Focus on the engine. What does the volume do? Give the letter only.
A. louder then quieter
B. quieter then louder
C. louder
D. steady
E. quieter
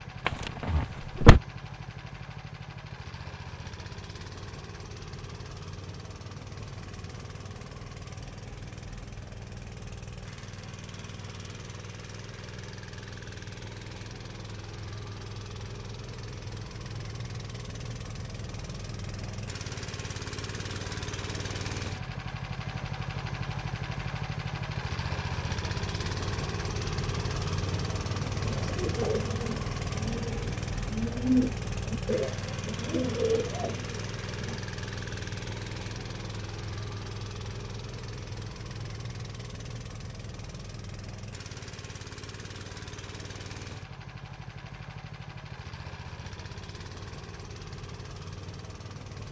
A.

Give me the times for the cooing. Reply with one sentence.
You can hear the cooing from 28.4 to 34.6 s.